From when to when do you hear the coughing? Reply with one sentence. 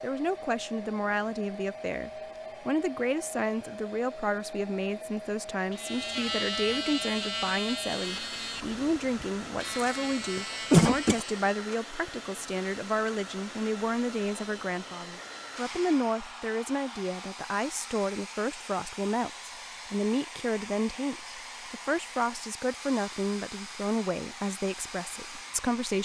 You can hear the coughing from 9.7 to 11.2 s.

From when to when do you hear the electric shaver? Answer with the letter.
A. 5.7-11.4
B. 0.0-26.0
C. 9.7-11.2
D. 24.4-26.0
A.